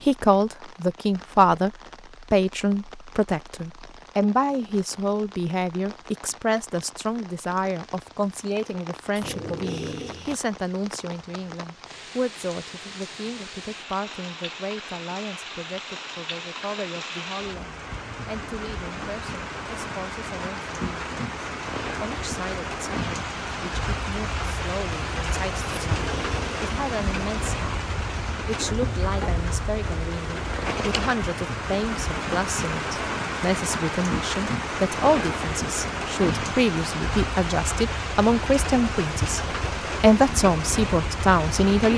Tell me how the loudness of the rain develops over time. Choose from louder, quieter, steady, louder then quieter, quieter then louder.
louder.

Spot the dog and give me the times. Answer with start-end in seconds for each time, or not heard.
9.2-10.3, 25.6-26.6.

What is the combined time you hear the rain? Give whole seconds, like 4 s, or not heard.
42 s.